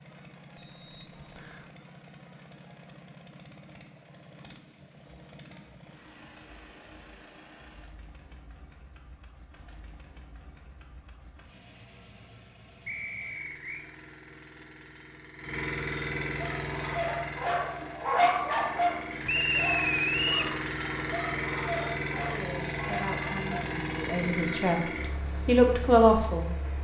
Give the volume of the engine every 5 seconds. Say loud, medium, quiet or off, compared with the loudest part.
quiet, quiet, quiet, loud, loud, medium.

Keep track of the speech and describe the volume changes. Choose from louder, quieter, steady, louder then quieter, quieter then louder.
louder.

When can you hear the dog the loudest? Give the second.
18 s.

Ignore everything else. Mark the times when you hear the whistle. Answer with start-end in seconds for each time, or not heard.
0.6-1.6, 12.8-13.8, 19.2-20.6.